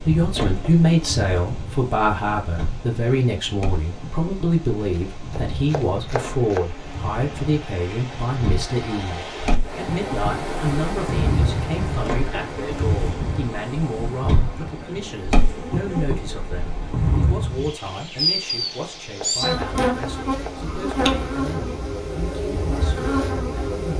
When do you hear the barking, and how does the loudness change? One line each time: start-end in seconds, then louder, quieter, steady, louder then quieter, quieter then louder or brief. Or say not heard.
not heard.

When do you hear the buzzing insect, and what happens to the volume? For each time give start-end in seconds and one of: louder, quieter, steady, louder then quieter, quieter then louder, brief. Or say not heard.
0.0-23.9 louder.